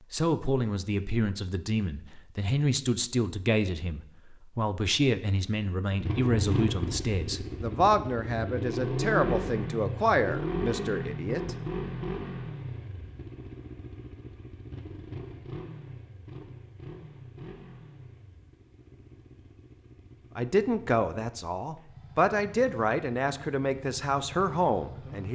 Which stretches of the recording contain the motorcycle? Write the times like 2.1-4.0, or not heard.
5.9-25.3.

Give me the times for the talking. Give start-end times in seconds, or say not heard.
0.1-11.6, 20.4-25.3.